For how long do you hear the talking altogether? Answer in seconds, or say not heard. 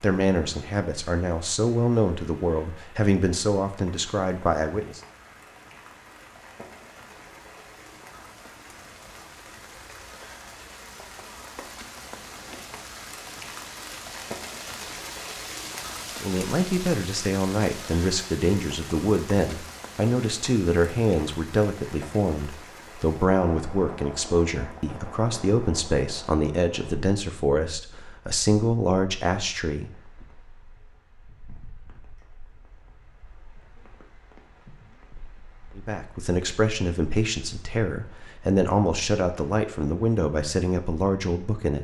25 s.